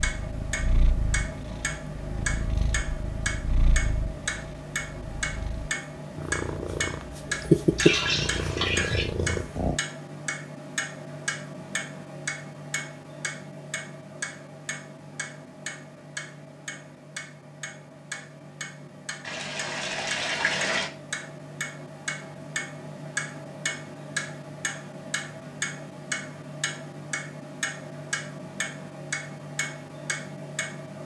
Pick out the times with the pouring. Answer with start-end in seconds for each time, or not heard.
7.8-9.1, 19.2-20.9.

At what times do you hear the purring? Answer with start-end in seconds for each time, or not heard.
0.0-9.8.